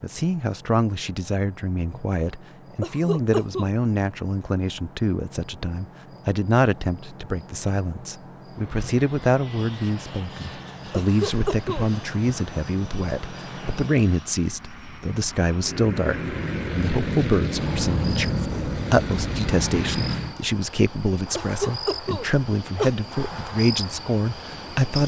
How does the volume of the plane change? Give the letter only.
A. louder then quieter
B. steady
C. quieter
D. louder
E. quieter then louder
D.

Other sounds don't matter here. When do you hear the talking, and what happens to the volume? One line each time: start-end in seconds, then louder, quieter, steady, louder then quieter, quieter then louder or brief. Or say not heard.
0.0-25.0 steady.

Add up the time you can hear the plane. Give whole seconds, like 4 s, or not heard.
12 s.